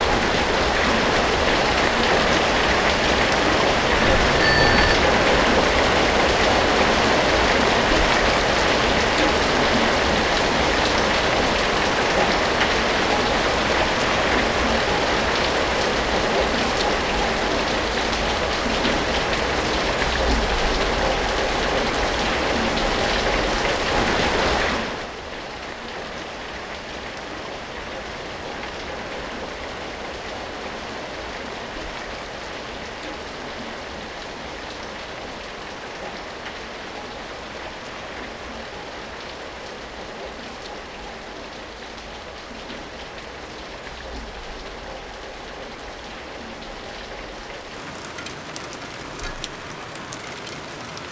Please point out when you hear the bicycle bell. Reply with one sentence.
The bicycle bell can be heard from 4.0 to 5.0 s.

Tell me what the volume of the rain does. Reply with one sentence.
The loudness of the rain goes down.